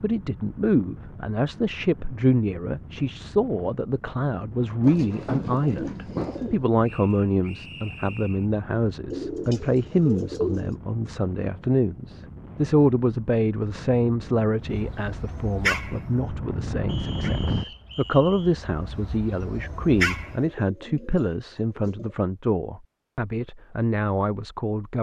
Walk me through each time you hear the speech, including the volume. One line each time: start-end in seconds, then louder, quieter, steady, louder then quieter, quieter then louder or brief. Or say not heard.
0.0-24.9 steady.